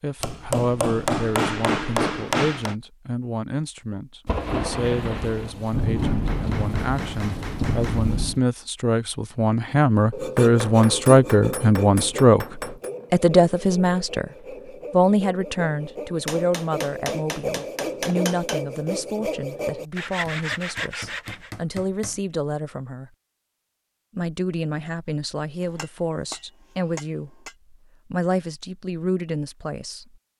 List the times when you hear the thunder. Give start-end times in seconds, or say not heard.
4.2-8.4.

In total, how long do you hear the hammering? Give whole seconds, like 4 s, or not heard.
13 s.